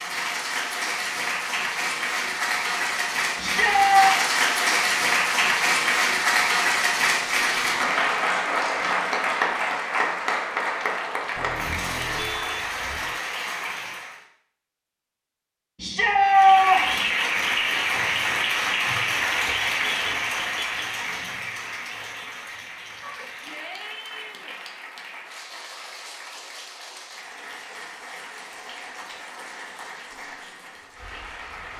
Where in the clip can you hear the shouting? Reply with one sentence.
You can hear the shouting from 3.4 to 4.2 s, from 15.8 to 17.1 s and from 23.0 to 24.6 s.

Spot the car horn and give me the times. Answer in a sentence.
You can hear the car horn from 11.3 to 13.2 s and from 19.8 to 20.9 s.